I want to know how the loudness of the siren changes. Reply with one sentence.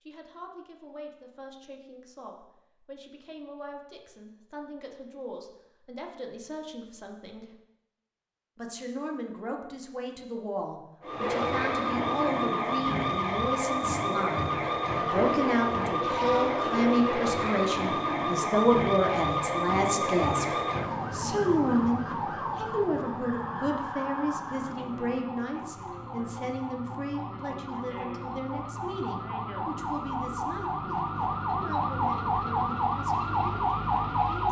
The volume of the siren goes down, then up.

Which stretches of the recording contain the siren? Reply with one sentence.
The siren can be heard from 11.0 to 34.4 s.